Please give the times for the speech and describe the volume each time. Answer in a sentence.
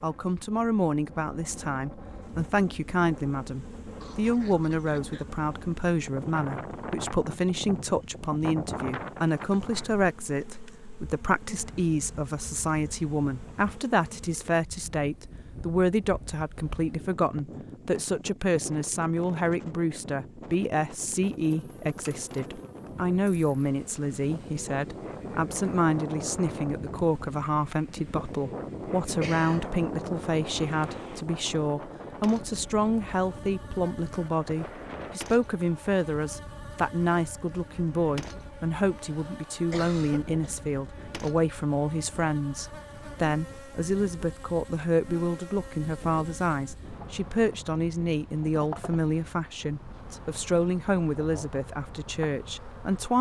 The speech can be heard from 0.0 to 53.1 s, at a steady volume.